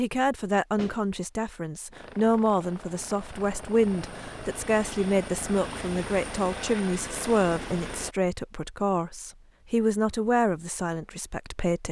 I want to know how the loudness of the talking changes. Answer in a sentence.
The volume of the talking stays about the same.